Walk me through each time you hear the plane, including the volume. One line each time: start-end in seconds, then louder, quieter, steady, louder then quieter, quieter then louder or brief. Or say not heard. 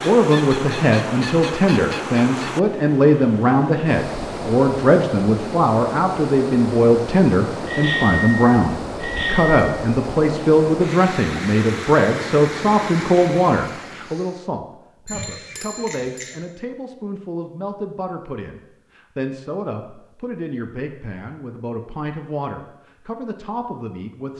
not heard.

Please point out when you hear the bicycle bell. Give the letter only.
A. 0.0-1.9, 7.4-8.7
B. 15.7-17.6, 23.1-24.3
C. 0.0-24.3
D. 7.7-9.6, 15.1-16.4
D.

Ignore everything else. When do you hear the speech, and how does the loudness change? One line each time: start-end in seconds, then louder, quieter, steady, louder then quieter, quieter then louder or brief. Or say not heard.
0.0-24.3 quieter.